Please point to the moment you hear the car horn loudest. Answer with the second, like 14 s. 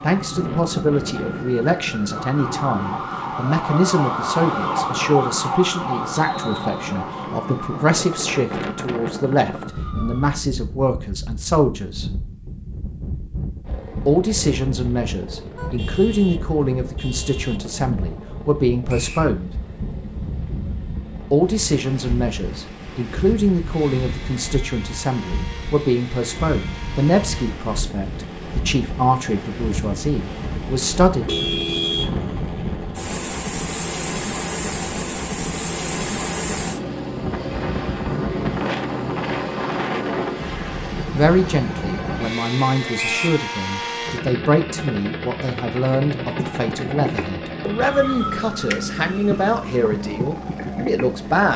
32 s.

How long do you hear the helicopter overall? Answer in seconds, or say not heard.
38 s.